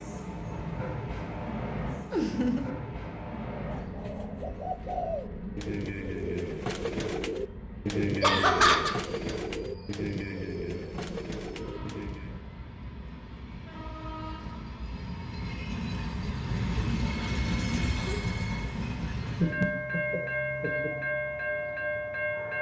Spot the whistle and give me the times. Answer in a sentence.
The whistle can't be heard in this clip.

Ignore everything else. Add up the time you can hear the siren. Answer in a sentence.
The siren can't be heard in this clip.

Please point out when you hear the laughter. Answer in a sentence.
The laughter can be heard from 2.1 to 2.7 s, from 8.2 to 8.9 s and from 19.4 to 20.9 s.